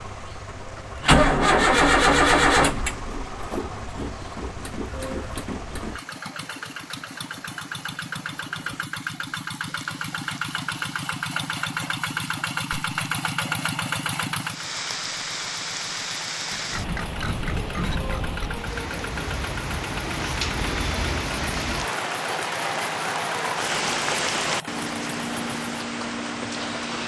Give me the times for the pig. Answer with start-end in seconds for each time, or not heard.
16.5-18.5.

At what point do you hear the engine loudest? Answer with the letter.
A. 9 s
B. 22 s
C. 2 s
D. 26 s
C.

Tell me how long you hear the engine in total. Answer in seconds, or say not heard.
27 s.